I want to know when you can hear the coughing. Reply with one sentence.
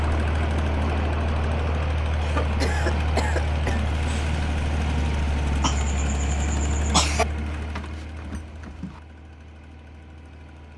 The coughing can be heard from 2.2 to 3.8 s and from 5.6 to 7.2 s.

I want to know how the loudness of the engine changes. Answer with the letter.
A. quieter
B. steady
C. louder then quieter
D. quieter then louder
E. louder
A.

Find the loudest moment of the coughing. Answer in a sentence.
The volume of the coughing peaks at 7 seconds.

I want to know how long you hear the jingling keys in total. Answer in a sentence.
The jingling keys can be heard for 2 seconds in total.